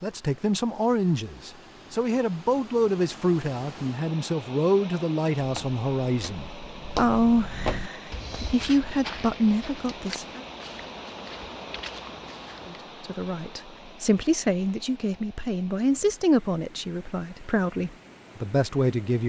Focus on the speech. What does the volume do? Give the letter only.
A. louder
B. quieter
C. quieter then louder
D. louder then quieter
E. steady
E.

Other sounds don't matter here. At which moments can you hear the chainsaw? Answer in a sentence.
You can't hear the chainsaw here.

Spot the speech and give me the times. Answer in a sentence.
You can hear the speech from 0.0 to 10.4 s and from 12.7 to 19.2 s.